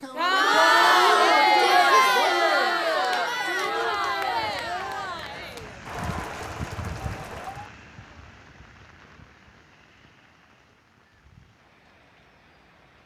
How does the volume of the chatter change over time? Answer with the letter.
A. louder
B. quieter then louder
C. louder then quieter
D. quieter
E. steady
D.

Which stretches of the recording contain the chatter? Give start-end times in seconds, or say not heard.
0.0-7.7.